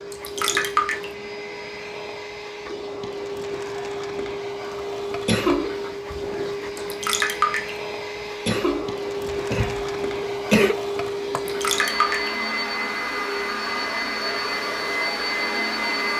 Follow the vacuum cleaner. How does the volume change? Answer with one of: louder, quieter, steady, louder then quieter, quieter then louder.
louder.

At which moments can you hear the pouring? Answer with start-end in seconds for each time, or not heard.
0.1-1.1, 6.8-7.8, 11.3-12.3.